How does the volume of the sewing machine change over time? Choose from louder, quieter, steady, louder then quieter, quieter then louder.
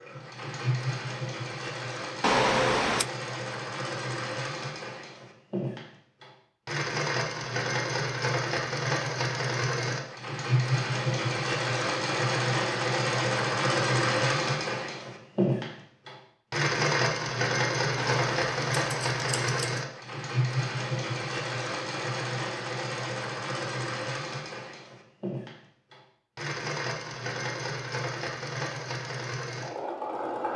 louder then quieter.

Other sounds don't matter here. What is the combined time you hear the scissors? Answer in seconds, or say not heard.
3 s.